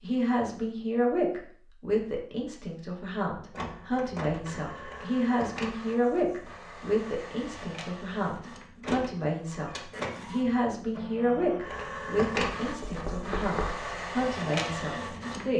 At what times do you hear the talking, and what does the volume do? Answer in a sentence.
The talking can be heard from 0.0 to 15.5 s, at a steady volume.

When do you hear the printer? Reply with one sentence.
You can hear the printer from 3.5 to 15.5 s.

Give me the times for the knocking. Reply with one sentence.
You can hear the knocking from 12.6 to 13.8 s.